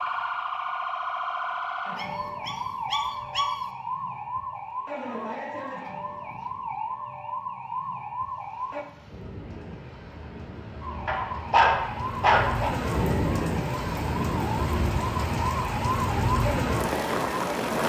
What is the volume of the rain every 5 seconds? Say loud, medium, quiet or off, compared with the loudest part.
off, quiet, loud, loud.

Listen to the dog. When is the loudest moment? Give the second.
12 s.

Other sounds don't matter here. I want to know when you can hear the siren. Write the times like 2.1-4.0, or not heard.
0.0-8.8, 10.8-17.8.